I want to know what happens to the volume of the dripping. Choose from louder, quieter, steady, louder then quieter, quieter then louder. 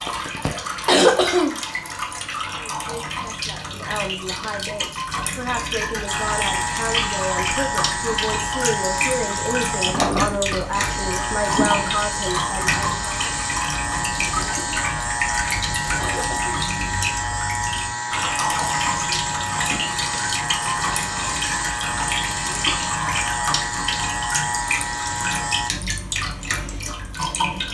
steady.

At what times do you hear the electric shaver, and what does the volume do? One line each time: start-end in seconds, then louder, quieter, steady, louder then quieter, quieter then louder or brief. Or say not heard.
6.0-25.7 steady.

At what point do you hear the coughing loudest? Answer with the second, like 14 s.
1 s.